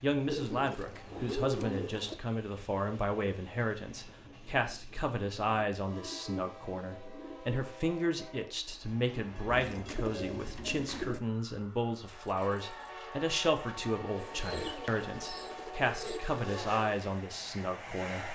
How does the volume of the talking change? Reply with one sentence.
The loudness of the talking stays about the same.